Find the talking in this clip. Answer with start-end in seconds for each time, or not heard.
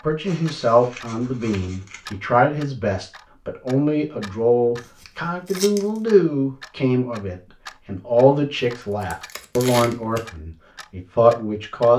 0.0-11.9.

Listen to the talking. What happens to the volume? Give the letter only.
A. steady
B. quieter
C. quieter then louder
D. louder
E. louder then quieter
A.